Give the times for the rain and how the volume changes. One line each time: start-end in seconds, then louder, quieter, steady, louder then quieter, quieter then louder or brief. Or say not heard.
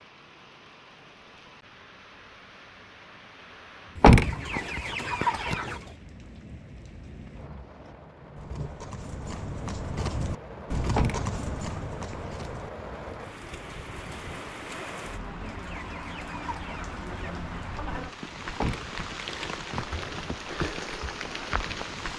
0.0-22.1 louder.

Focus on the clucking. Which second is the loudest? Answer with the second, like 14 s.
5 s.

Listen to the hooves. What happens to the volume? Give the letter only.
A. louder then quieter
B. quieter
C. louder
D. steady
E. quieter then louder
A.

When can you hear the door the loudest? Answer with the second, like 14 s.
4 s.